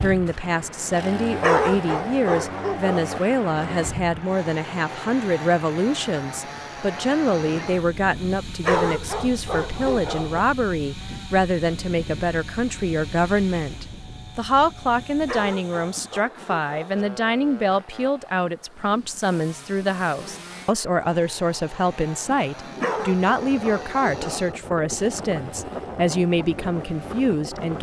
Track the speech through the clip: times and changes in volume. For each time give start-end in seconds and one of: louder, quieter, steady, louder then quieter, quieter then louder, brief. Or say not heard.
0.0-27.7 steady.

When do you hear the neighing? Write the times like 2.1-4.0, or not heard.
not heard.